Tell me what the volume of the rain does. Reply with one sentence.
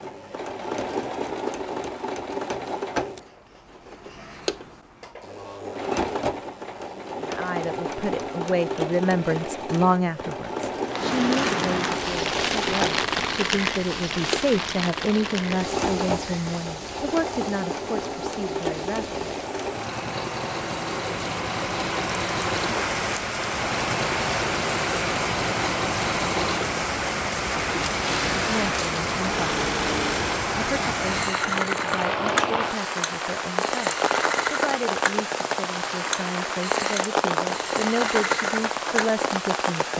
The volume of the rain goes down, then up.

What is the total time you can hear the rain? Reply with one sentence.
The rain can be heard for 29 seconds in total.